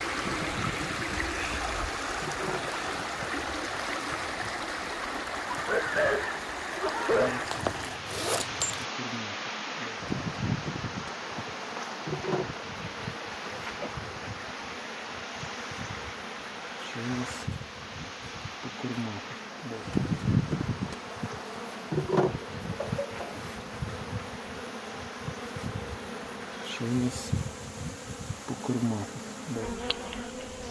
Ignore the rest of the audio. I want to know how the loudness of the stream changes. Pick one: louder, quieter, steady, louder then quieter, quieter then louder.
quieter.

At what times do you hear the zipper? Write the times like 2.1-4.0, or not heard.
7.5-8.8.